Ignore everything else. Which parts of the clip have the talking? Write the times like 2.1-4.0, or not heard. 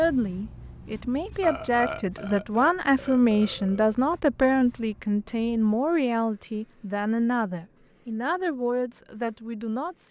0.0-10.0.